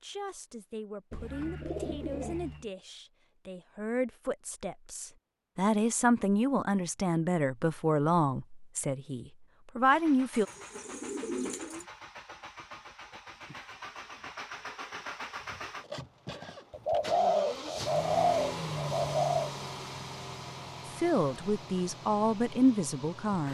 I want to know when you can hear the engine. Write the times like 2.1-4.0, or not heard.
9.8-23.4.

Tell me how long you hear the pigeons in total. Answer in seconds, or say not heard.
6 s.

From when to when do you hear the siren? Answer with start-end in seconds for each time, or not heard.
not heard.